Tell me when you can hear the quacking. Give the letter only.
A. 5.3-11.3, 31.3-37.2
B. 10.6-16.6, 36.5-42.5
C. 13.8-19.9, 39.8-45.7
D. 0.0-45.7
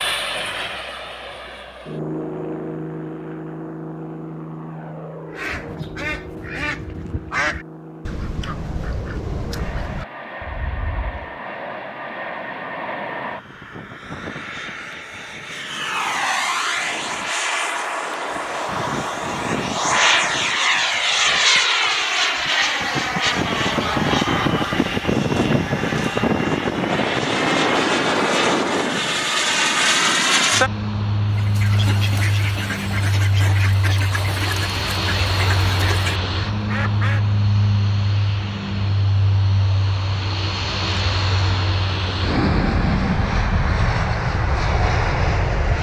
A.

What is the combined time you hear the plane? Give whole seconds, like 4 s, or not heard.
46 s.